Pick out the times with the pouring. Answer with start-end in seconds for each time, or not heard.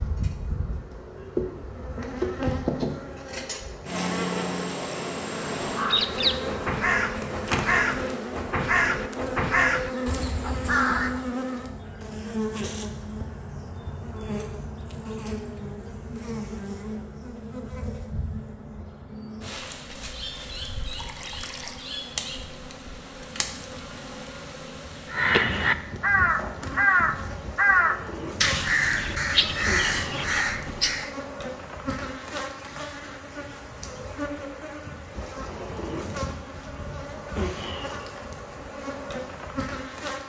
20.9-21.8.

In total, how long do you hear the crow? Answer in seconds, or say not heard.
12 s.